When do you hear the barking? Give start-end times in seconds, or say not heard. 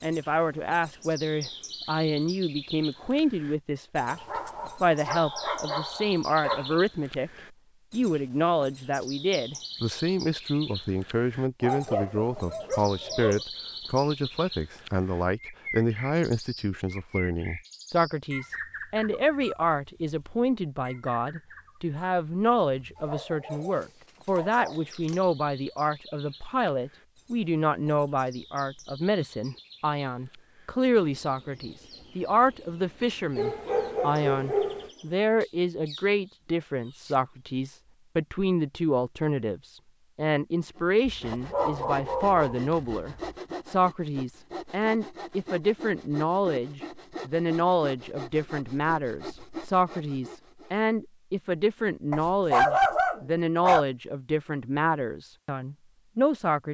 4.0-6.8, 11.6-13.4, 22.9-25.2, 33.4-34.9, 41.0-43.4, 52.1-53.9.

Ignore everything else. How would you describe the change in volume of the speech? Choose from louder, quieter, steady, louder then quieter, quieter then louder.
steady.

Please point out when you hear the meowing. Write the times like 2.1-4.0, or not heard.
not heard.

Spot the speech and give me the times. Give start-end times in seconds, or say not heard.
0.0-7.3, 7.9-56.6.